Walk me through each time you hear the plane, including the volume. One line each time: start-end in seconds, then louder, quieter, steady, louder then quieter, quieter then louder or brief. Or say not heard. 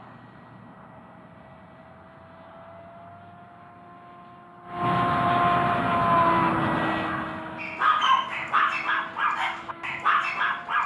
0.0-10.8 louder then quieter.